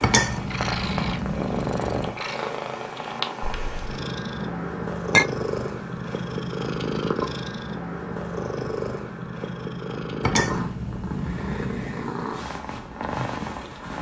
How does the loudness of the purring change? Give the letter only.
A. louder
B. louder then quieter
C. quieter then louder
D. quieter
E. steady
E.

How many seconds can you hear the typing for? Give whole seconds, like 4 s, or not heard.
not heard.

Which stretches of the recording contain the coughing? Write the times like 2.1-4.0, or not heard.
3.4-4.0.